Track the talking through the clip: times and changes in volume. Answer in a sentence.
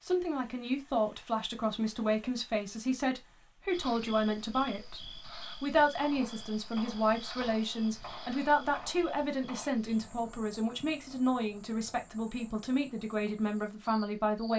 You can hear the talking from 0.0 to 14.5 s, at a steady volume.